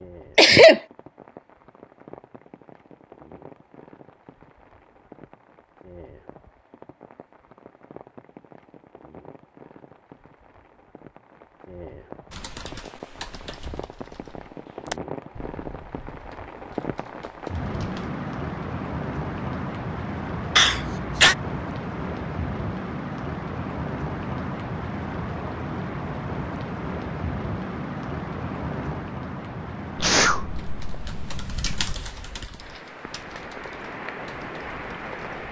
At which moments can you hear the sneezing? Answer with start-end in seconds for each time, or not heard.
0.3-0.8, 20.6-21.4, 29.9-31.9.